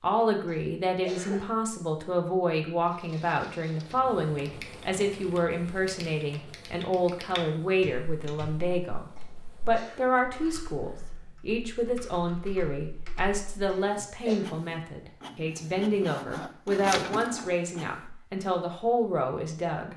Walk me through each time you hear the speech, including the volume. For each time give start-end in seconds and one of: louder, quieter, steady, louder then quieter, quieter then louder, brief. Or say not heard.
0.0-19.9 steady.